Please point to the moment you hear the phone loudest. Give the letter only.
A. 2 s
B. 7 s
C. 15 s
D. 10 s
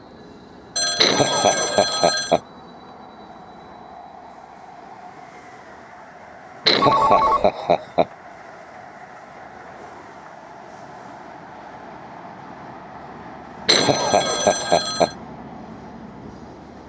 B.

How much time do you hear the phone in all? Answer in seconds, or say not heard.
4 s.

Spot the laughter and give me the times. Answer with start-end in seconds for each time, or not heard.
0.9-2.4, 6.7-8.1, 13.7-15.1.